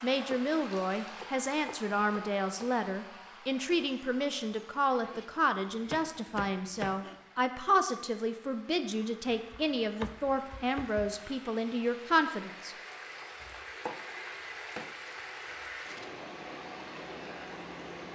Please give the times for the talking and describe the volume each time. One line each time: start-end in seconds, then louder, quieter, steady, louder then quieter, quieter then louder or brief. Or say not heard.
0.0-12.8 steady.